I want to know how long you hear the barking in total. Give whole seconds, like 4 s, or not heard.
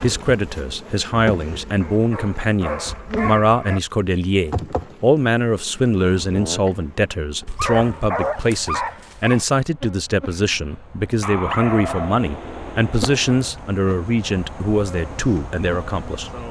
6 s.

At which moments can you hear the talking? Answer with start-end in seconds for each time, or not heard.
0.0-16.3.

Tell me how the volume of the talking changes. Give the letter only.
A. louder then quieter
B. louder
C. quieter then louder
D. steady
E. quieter
D.